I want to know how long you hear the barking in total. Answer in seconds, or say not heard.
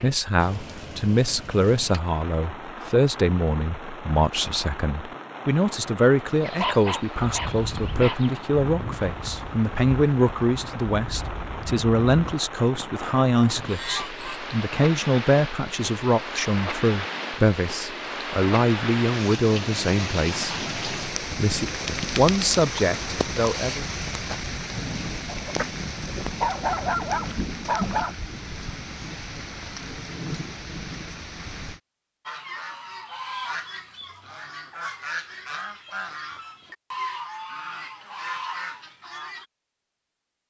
4 s.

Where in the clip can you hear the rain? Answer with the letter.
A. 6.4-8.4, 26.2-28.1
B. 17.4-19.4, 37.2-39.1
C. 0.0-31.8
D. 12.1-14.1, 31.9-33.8
C.